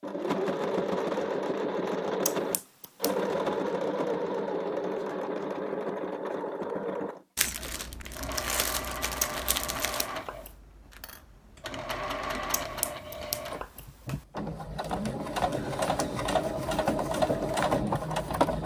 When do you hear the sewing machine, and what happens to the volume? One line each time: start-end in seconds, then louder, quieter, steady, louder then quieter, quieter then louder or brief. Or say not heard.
0.0-18.6 quieter then louder.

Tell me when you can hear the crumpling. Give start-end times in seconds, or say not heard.
7.3-10.1.